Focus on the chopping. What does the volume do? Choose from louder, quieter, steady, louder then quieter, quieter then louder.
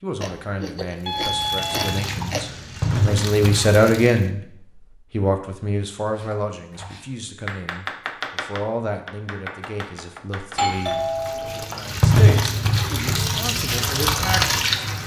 louder then quieter.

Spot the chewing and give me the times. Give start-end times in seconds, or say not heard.
0.2-2.9.